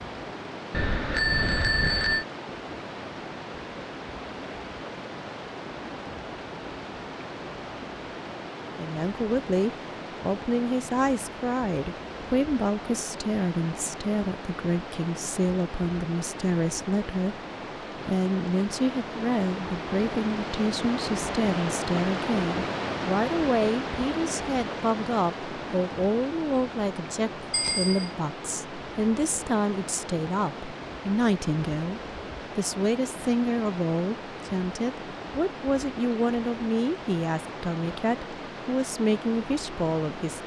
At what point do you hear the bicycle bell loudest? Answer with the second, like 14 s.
1 s.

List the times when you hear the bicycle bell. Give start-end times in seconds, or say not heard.
0.7-2.2, 27.5-28.1.